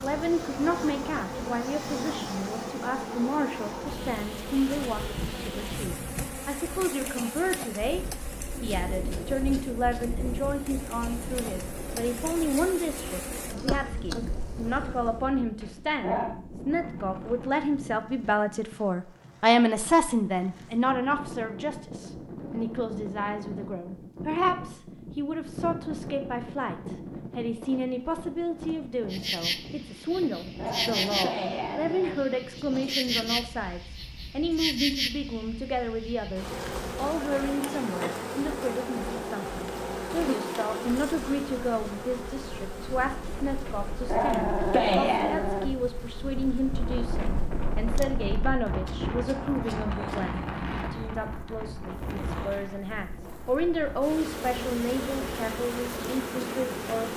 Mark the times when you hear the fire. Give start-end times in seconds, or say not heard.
not heard.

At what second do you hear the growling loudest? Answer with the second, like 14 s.
45 s.